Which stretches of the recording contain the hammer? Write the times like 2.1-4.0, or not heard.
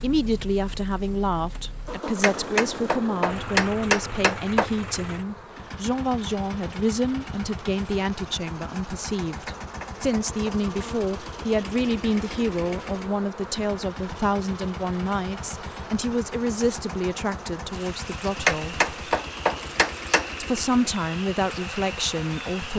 2.2-4.7, 9.4-10.9, 18.4-20.3.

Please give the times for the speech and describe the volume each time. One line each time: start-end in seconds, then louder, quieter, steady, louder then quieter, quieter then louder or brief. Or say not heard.
0.0-18.8 steady
20.4-22.7 brief.